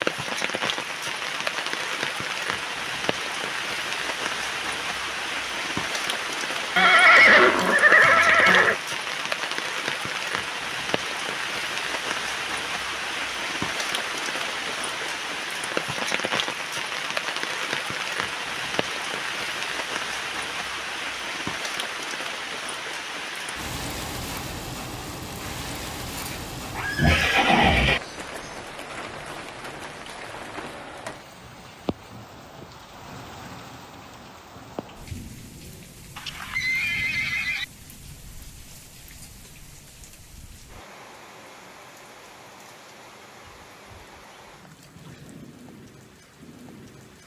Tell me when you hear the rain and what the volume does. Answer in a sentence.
The rain can be heard from 0.0 to 47.2 s, getting quieter.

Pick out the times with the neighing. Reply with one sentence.
You can hear the neighing from 6.8 to 8.8 s, from 26.1 to 28.0 s and from 36.1 to 37.6 s.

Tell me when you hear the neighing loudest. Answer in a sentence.
The loudest moment of the neighing is at 7 seconds.